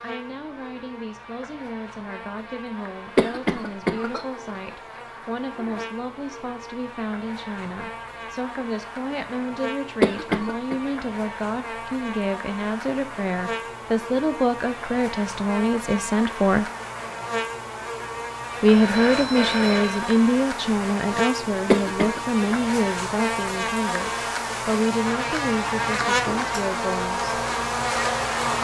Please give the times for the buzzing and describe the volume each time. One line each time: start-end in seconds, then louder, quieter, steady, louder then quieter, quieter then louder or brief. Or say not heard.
0.0-28.5 louder.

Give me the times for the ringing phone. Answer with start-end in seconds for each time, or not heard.
18.7-20.1.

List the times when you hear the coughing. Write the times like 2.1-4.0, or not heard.
3.1-4.2, 10.0-10.8, 21.6-22.2.